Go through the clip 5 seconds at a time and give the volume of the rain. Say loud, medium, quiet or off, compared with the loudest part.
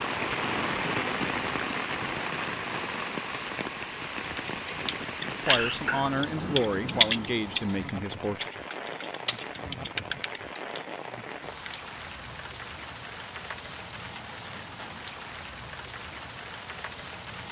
loud, medium, medium, medium.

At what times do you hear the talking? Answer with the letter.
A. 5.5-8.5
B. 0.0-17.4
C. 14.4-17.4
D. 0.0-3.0
A.